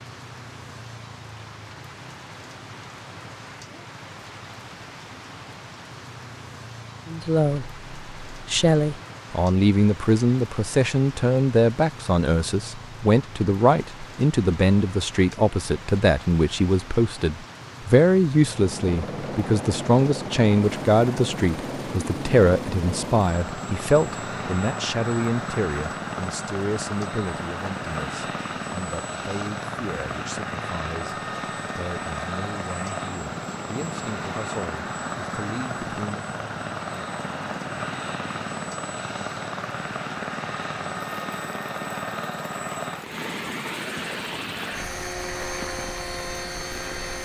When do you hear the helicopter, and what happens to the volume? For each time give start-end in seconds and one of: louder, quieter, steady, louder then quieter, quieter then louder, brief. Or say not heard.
18.4-47.2 steady.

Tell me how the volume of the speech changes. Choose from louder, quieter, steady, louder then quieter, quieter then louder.
quieter.